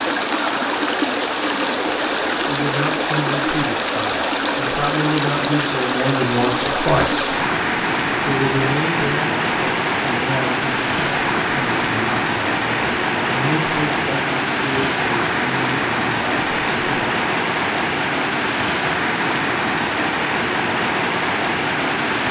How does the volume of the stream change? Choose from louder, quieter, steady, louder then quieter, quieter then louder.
steady.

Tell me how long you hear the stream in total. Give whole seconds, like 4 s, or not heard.
22 s.